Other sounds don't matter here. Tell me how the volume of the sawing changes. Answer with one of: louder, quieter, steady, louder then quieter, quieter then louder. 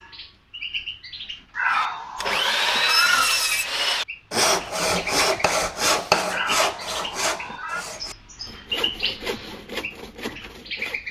quieter.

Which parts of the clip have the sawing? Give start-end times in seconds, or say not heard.
1.7-11.0.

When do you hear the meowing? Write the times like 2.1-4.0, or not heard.
1.6-3.4, 6.2-7.8.